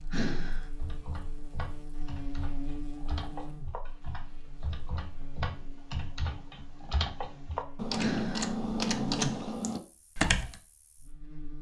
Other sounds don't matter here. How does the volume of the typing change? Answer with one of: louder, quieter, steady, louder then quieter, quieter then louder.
louder.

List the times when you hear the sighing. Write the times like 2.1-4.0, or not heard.
0.1-0.7, 8.0-8.6.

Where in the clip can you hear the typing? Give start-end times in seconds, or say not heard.
0.8-10.6.